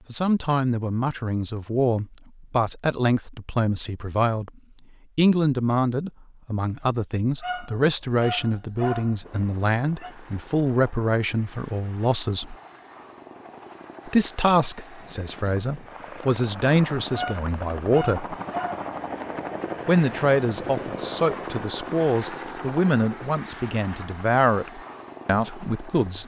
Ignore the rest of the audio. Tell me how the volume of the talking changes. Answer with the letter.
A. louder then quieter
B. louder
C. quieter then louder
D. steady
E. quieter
D.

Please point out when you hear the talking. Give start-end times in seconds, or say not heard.
0.1-4.5, 5.2-12.6, 14.1-18.4, 19.9-26.2.